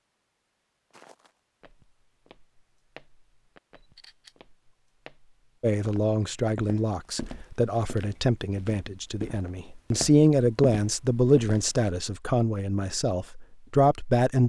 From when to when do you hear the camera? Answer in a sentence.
You can hear the camera from 3.8 to 4.3 s.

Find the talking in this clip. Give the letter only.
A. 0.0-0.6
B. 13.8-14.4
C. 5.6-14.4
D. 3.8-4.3
C.